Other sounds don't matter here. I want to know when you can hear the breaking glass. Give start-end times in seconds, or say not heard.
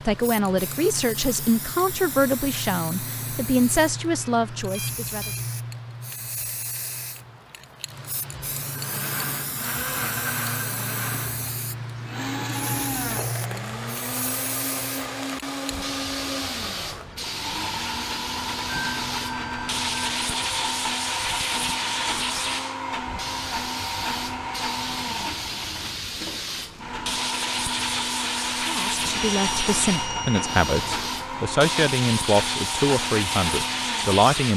not heard.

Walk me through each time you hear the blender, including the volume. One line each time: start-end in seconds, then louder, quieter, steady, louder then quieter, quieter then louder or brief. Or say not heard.
8.7-34.5 steady.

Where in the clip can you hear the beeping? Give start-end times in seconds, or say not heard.
4.7-5.4, 18.6-20.2, 29.0-31.1.